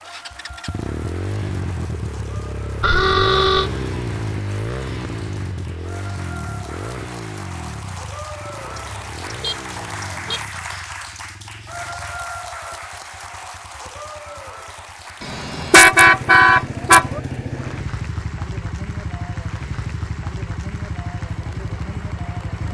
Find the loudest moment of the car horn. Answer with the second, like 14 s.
16 s.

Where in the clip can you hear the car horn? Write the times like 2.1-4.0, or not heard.
2.8-3.7, 8.7-10.4, 15.2-17.2.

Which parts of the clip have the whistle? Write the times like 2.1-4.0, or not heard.
not heard.